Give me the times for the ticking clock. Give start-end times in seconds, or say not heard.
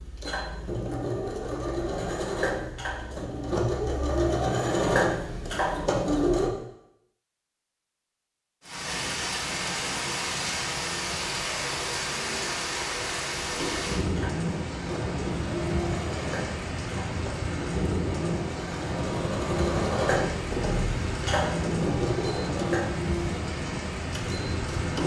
not heard.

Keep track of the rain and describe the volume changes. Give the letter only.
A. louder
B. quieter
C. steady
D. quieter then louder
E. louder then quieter
C.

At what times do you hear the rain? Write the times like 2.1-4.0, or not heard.
8.6-25.0.